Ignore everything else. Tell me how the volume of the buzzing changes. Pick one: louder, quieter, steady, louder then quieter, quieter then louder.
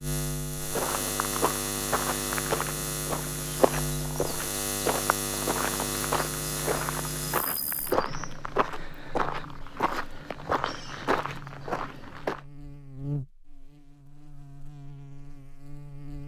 quieter then louder.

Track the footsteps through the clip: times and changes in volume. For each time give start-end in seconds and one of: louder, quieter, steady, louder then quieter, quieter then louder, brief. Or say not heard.
0.7-12.4 steady.